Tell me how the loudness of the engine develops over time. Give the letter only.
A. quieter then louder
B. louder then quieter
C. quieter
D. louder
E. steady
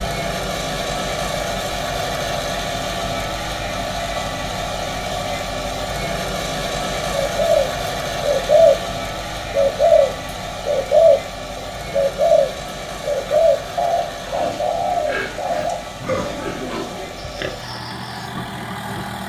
C.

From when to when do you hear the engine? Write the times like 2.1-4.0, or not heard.
0.0-19.2.